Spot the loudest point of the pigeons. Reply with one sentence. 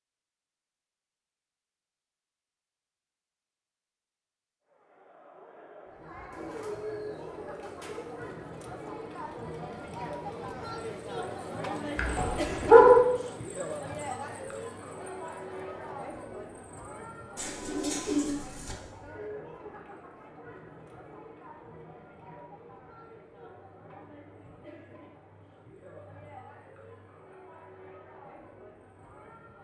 The volume of the pigeons peaks at 18 seconds.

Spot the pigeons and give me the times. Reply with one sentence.
The pigeons can be heard from 6.3 to 8.3 s and from 17.4 to 18.8 s.